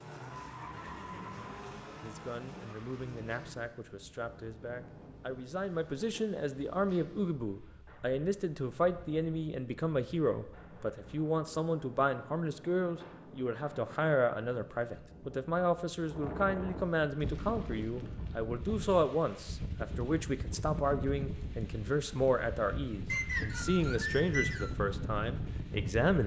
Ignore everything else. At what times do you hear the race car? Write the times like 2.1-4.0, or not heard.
0.0-3.5.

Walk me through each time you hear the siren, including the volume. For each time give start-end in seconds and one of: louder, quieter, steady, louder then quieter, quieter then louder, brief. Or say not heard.
not heard.